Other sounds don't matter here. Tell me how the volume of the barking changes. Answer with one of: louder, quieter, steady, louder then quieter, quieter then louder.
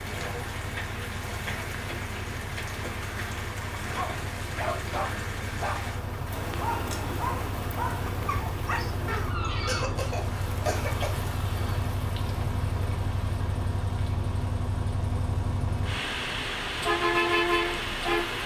steady.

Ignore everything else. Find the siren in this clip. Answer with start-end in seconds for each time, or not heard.
not heard.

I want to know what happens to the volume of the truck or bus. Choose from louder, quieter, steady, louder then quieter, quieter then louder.
louder.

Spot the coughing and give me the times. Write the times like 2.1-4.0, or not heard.
9.1-11.1.